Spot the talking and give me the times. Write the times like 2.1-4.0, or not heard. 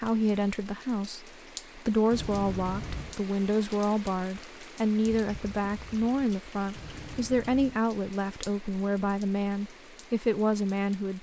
0.0-11.1.